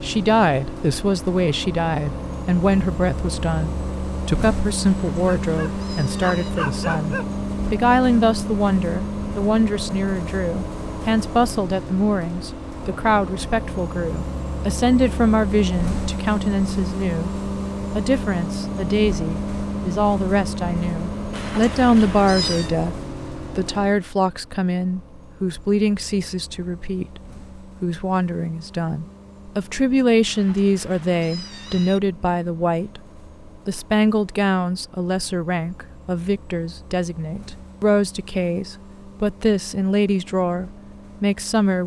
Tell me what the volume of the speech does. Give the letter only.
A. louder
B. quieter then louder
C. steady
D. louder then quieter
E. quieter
C.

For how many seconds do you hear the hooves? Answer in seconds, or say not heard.
not heard.